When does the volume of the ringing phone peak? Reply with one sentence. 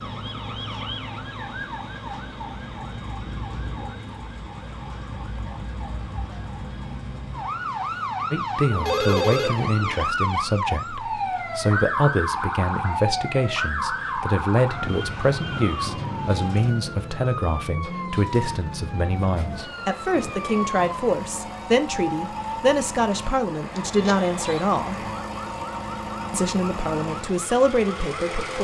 The loudest moment of the ringing phone is at 9 seconds.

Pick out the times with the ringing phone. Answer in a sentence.
You can hear the ringing phone from 8.7 to 10.0 s and from 23.8 to 24.6 s.